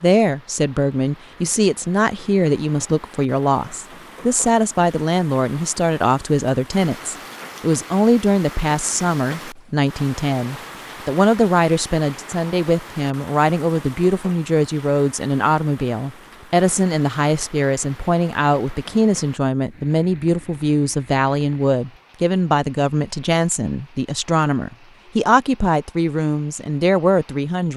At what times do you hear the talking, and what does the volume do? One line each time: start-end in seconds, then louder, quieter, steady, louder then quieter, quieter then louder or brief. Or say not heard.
0.0-27.7 steady.